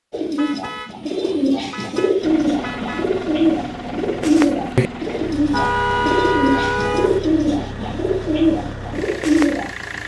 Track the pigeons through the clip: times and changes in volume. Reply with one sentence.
The pigeons can be heard from 0.1 to 9.7 s, at a steady volume.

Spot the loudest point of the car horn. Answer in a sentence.
The volume of the car horn peaks at 6 seconds.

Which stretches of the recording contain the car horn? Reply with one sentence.
You can hear the car horn from 0.3 to 3.1 s and from 5.5 to 7.2 s.